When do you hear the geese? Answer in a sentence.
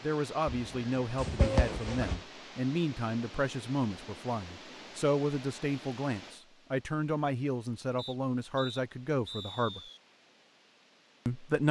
You can hear the geese from 0.5 to 2.2 s.